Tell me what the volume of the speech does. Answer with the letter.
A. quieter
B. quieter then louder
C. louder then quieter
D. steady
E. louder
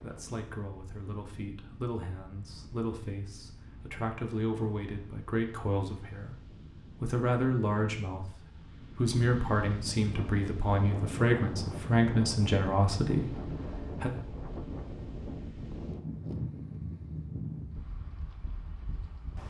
E.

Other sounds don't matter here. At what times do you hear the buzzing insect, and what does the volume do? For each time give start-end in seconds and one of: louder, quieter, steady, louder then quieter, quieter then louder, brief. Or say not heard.
not heard.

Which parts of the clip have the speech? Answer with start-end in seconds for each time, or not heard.
0.0-14.1.